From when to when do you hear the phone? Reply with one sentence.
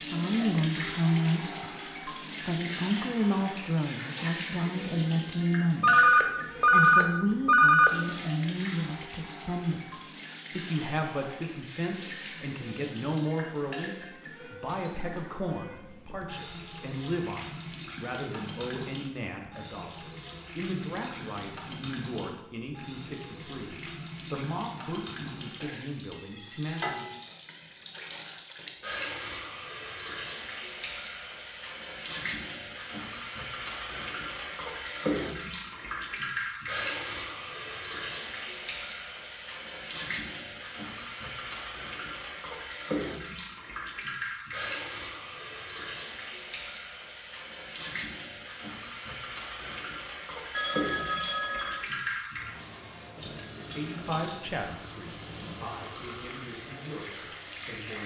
The phone can be heard from 5.8 to 8.0 s and from 50.5 to 51.9 s.